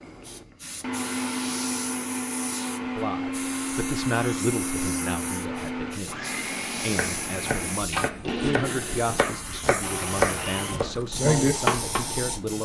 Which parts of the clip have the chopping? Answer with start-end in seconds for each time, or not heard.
6.8-12.1.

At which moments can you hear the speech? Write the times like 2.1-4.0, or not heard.
2.8-12.5.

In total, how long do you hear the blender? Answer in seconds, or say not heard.
11 s.